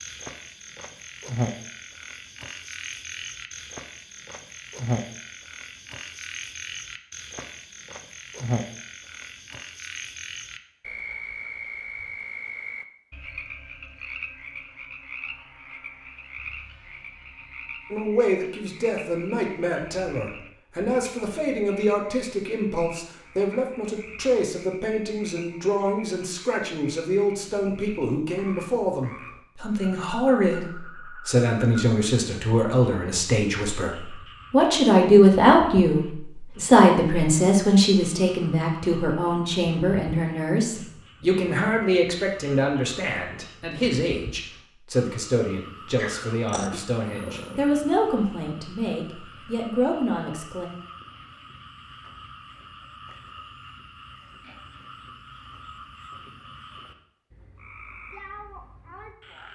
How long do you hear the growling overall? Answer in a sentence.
The growling can be heard for 2 seconds in total.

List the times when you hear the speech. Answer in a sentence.
The speech can be heard from 17.9 to 50.7 s.